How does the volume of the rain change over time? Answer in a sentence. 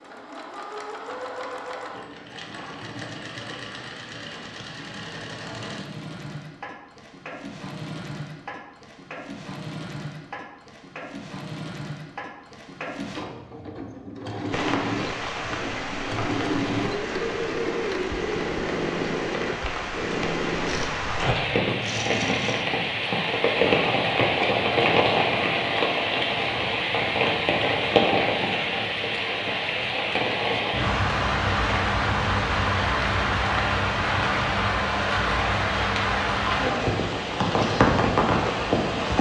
The loudness of the rain goes up.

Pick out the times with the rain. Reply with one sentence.
The rain can be heard from 14.5 to 39.1 s.